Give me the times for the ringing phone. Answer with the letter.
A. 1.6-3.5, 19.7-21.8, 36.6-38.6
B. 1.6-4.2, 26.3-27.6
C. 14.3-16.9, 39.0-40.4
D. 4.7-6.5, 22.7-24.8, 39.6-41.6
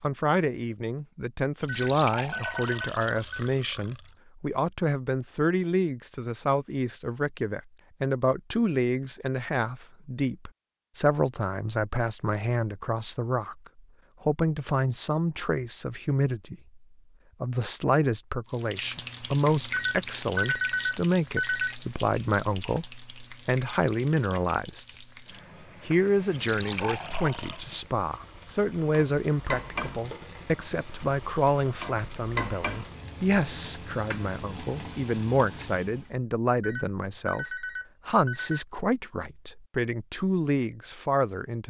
A.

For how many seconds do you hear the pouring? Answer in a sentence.
You can hear the pouring for 4 seconds altogether.